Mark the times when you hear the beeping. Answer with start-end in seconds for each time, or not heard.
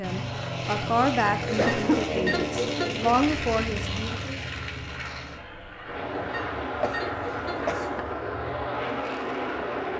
1.4-3.1, 6.2-7.8.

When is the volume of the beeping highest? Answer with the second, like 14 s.
3 s.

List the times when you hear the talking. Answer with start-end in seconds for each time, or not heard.
0.0-4.4.